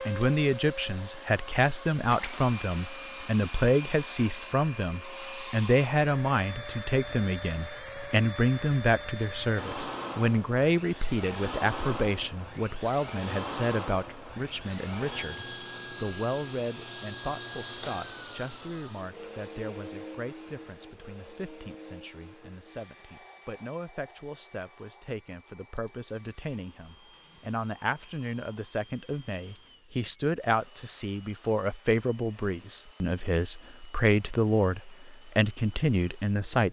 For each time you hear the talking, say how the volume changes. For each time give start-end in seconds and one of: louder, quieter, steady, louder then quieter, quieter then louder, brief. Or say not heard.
0.1-36.6 quieter then louder.